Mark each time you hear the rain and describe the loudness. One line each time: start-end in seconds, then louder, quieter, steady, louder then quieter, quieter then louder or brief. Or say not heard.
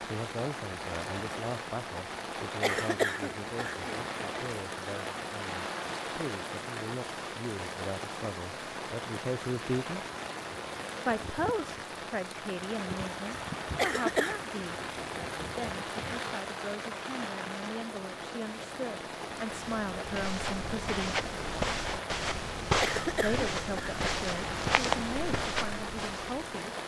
0.0-26.8 steady.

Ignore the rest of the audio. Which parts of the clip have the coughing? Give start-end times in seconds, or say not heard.
2.6-4.4, 13.8-14.3, 22.8-23.9.